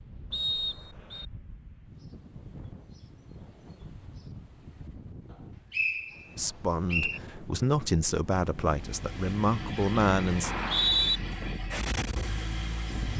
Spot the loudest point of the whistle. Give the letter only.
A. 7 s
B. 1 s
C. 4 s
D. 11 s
D.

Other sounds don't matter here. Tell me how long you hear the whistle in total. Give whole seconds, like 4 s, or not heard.
3 s.